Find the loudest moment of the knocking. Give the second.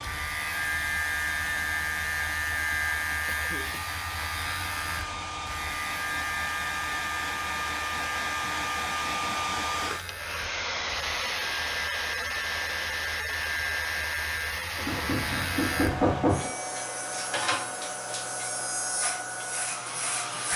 16 s.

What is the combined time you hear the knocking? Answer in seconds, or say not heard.
2 s.